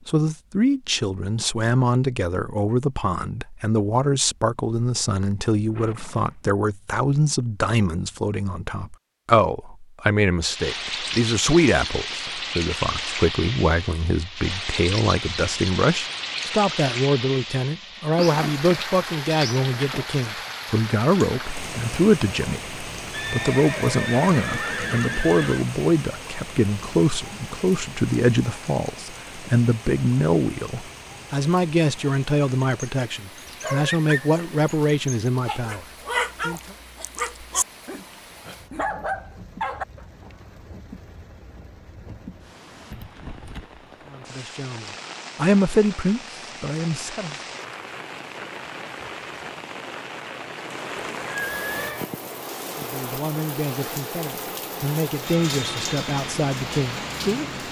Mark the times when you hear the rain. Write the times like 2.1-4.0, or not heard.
10.4-57.6.